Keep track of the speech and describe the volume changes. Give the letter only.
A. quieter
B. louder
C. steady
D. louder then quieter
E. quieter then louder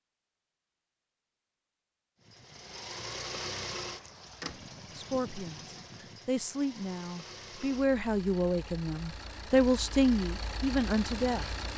B.